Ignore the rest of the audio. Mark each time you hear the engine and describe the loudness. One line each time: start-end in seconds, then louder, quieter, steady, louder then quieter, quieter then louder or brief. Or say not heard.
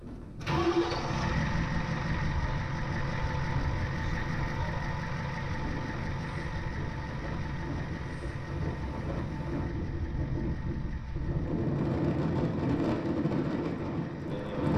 0.0-14.7 quieter.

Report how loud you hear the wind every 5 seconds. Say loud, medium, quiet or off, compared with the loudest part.
quiet, medium, loud.